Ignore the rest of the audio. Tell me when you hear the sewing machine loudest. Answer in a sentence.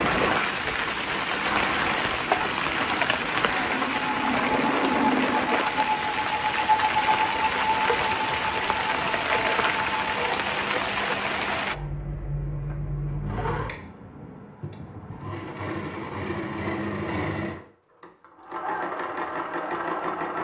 The loudest moment of the sewing machine is at 7 seconds.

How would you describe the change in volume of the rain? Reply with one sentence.
The loudness of the rain stays about the same.